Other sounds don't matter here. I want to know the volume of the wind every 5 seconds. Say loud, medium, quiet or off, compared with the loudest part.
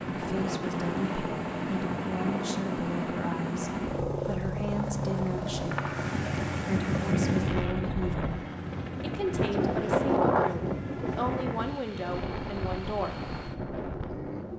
medium, loud, loud.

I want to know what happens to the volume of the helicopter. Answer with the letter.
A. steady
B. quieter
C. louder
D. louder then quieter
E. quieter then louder
B.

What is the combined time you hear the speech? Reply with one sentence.
You can hear the speech for 12 seconds altogether.